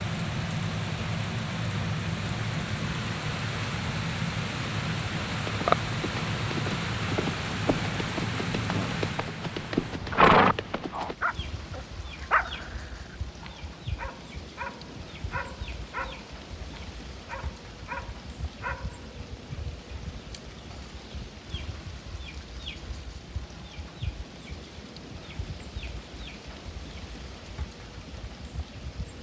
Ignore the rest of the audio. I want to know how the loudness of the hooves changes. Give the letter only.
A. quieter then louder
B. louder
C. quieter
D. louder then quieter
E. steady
B.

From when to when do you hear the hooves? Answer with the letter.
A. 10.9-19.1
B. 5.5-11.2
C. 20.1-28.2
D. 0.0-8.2
B.